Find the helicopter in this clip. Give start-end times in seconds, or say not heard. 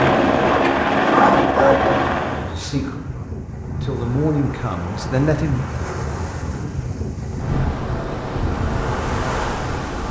0.0-2.5.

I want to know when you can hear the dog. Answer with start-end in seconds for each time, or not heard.
0.3-1.8.